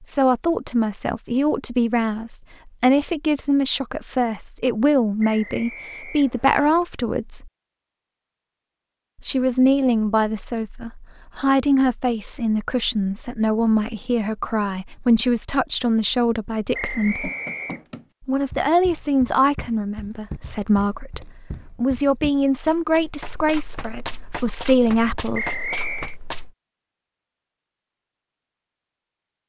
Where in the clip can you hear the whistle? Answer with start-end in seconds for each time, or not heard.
5.2-6.8, 16.7-17.9, 25.3-26.1.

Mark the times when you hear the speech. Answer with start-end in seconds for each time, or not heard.
0.0-7.5, 9.2-17.3, 18.2-25.6.